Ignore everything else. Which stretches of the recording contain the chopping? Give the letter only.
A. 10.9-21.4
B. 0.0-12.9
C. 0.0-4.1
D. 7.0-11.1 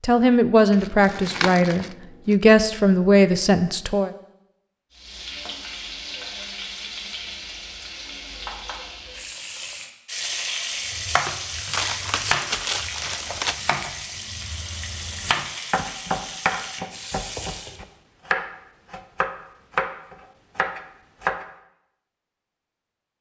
A.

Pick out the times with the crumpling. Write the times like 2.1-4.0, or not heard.
0.7-2.4, 11.7-13.8.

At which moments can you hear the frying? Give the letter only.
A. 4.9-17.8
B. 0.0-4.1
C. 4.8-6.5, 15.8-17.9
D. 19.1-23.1
A.